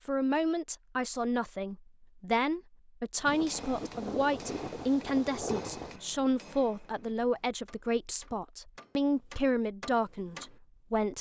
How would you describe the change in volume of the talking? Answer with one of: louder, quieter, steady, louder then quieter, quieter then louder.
steady.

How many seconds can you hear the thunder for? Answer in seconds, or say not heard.
3 s.